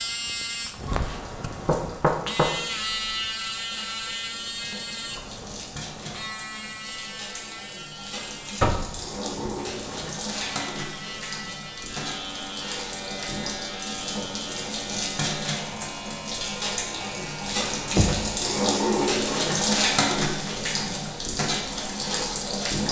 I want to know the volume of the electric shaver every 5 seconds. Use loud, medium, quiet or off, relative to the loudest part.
loud, medium, medium, medium, off.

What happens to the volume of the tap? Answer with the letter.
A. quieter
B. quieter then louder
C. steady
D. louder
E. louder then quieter
D.